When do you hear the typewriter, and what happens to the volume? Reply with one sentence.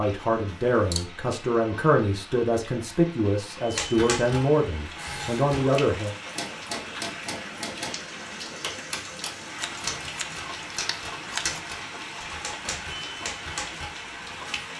The typewriter can be heard from 3.6 to 14.7 s, at a steady volume.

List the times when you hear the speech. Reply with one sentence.
The speech can be heard from 0.0 to 6.2 s.